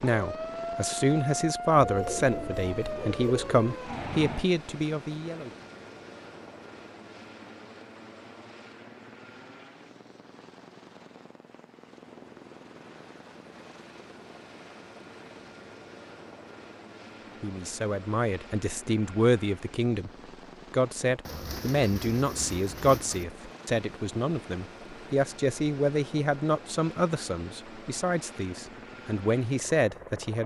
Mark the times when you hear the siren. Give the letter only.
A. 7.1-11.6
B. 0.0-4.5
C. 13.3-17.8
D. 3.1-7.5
B.